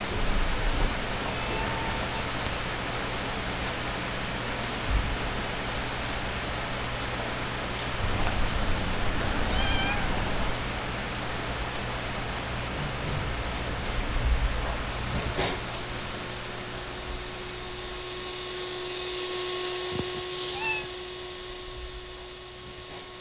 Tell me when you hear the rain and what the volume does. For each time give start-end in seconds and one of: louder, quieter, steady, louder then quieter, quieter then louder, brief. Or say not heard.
0.0-23.1 quieter.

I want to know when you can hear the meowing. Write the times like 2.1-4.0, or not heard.
0.8-2.5, 8.0-10.7, 19.9-20.9.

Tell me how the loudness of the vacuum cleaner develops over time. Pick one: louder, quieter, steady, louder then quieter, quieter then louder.
louder then quieter.